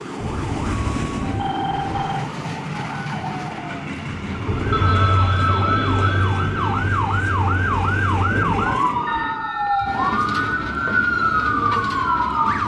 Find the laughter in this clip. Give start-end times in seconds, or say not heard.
not heard.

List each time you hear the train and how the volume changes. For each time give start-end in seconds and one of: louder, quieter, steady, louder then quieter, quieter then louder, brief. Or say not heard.
0.0-12.6 steady.